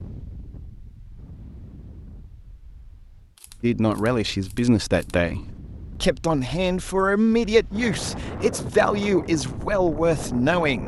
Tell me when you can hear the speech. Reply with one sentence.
The speech can be heard from 3.6 to 10.8 s.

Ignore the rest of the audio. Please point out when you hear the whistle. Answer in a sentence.
You can't hear the whistle here.